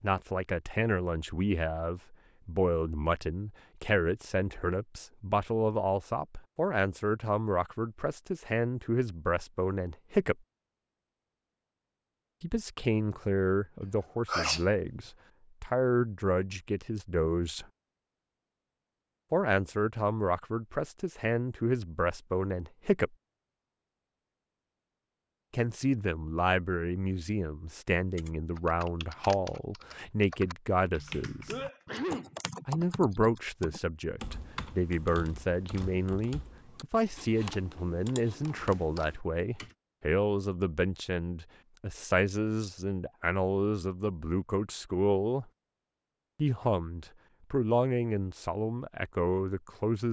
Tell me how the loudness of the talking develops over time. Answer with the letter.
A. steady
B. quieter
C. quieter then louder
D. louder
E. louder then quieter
A.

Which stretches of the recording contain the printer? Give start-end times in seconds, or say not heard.
not heard.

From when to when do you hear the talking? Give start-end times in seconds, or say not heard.
0.0-10.3, 12.4-17.6, 19.3-23.1, 25.5-31.5, 32.6-45.5, 46.4-50.0.